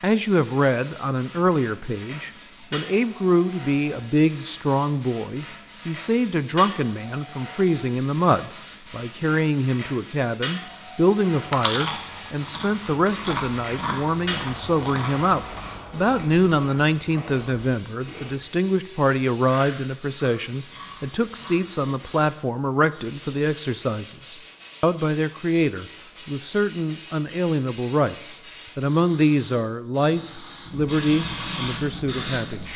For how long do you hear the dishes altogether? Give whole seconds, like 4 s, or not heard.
not heard.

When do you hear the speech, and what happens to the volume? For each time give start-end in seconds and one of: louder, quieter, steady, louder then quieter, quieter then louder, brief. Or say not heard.
0.0-32.7 steady.